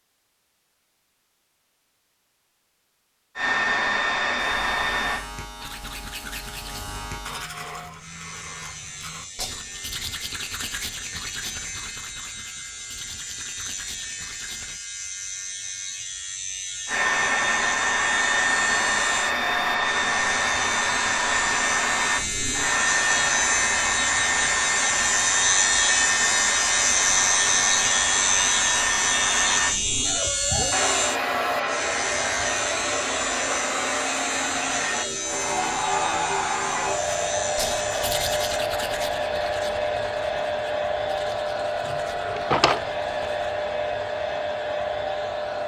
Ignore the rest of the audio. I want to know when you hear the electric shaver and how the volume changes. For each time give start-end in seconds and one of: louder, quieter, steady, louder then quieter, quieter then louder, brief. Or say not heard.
4.5-38.6 louder then quieter.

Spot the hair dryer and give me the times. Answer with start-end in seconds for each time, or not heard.
3.4-5.2, 16.9-45.6.